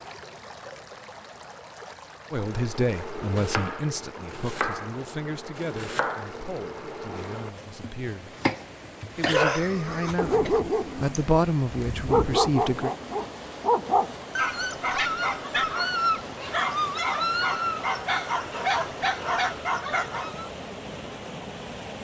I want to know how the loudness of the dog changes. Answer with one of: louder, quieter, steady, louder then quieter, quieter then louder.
steady.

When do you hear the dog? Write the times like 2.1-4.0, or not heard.
9.3-20.5.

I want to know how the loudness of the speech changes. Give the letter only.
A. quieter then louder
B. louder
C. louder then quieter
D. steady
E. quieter
A.